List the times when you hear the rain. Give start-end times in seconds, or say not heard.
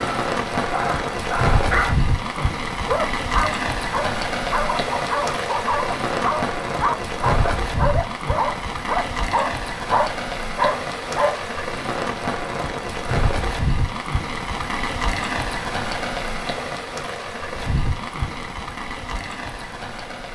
0.0-20.3.